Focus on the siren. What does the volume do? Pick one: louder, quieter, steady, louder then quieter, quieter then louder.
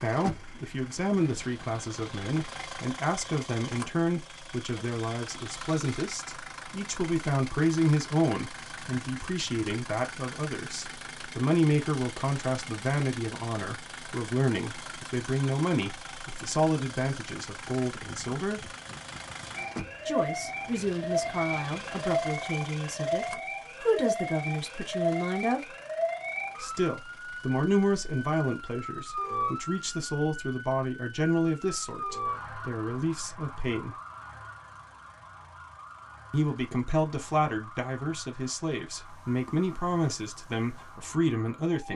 quieter.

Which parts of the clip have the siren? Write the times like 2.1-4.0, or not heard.
19.6-41.9.